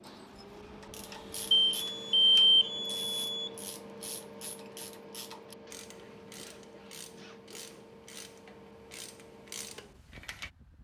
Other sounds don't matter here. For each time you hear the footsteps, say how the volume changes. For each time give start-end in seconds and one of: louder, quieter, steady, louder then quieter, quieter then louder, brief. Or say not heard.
not heard.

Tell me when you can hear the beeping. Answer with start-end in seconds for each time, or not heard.
1.5-3.5.